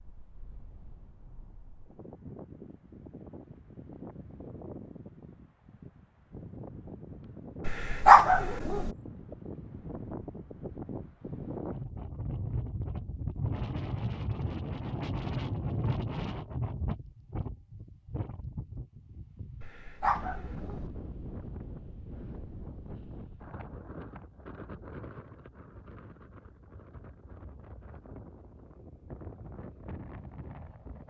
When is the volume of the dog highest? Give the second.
8 s.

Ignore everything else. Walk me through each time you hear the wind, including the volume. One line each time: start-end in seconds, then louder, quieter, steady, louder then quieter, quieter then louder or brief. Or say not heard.
0.0-31.0 louder then quieter.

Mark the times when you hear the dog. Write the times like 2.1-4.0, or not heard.
7.7-8.9, 19.6-20.9.